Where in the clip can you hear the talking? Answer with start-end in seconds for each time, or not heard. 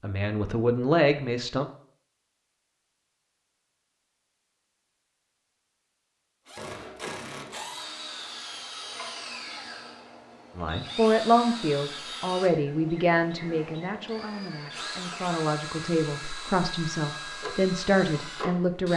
0.0-1.6, 10.6-18.9.